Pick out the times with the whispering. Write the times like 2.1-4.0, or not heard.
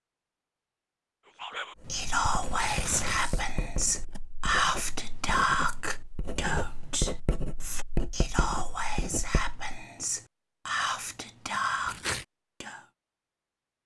1.4-12.8.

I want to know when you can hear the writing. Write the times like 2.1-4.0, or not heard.
1.8-9.6.